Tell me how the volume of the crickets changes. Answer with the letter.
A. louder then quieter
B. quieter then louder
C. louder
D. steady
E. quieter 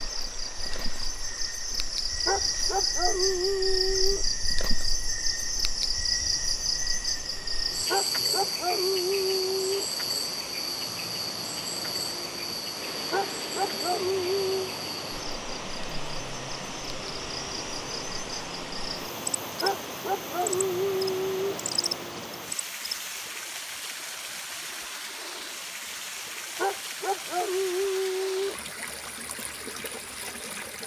E.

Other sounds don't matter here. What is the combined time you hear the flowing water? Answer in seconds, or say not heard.
31 s.